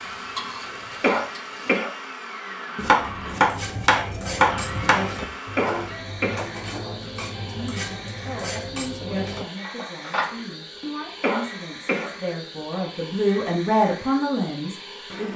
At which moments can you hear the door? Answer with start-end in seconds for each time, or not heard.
not heard.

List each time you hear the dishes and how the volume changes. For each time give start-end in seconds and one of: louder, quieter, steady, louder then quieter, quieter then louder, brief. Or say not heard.
3.4-10.4 steady.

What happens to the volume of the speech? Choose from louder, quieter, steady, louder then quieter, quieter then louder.
louder.